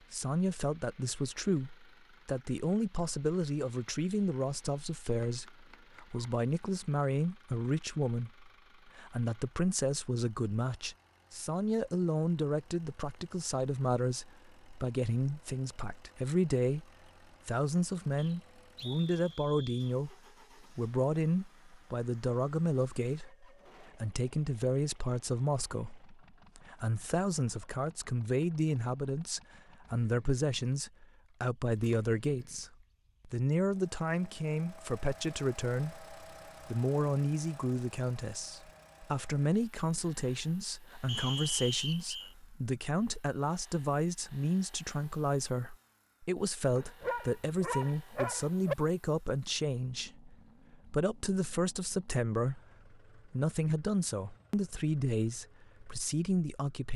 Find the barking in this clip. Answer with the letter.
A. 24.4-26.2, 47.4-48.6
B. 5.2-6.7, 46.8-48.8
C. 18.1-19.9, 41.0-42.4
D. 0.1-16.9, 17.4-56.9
B.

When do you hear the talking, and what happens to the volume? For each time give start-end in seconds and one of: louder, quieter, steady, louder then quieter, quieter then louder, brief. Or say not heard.
0.1-16.9 steady
17.4-56.9 steady.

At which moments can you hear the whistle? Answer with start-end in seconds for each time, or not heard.
18.1-19.9, 41.0-42.4.